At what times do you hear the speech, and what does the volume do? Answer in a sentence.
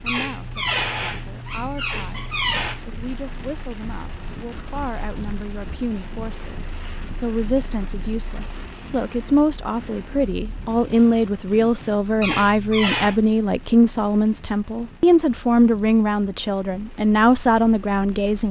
The speech can be heard from 0.0 to 18.4 s, getting louder.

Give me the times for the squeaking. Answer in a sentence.
The squeaking can be heard from 0.1 to 2.8 s and from 12.2 to 13.2 s.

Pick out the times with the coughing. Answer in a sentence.
You can't hear the coughing here.